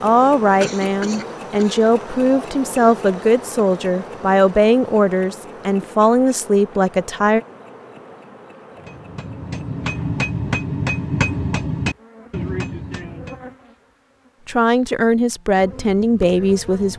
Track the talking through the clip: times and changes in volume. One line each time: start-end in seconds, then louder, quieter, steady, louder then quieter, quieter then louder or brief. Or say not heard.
0.0-7.4 steady
14.4-16.9 brief.